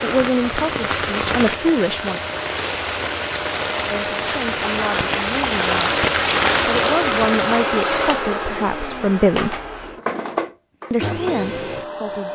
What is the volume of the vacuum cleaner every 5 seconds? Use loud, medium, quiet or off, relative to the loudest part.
medium, loud, loud.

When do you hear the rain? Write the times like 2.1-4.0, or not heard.
0.0-7.7.